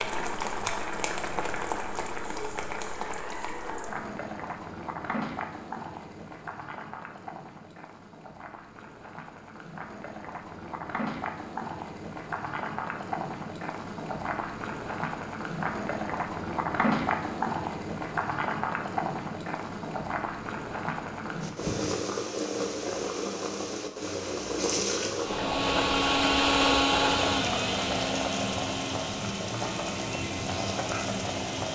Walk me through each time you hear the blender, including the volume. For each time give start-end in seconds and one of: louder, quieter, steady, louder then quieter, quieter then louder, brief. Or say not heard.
25.1-31.7 quieter.